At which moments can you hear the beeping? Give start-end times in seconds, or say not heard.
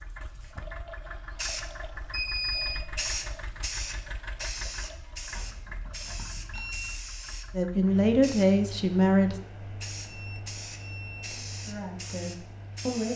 2.1-2.8, 5.3-7.0, 10.1-11.5.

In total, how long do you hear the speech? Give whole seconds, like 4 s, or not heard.
3 s.